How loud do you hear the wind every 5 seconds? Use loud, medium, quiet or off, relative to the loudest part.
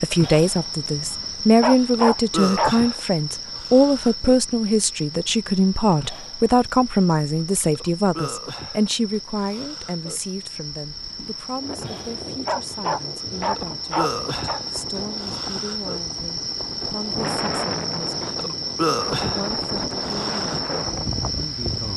off, off, medium, loud, loud.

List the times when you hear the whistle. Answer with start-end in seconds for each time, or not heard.
not heard.